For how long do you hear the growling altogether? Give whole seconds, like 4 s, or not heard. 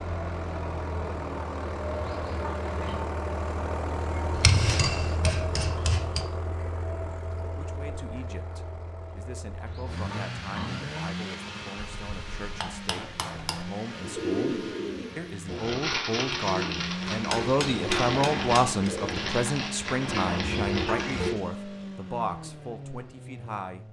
3 s.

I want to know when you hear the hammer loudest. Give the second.
5 s.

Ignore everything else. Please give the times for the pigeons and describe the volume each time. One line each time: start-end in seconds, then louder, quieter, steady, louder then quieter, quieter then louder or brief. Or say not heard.
13.9-21.4 steady.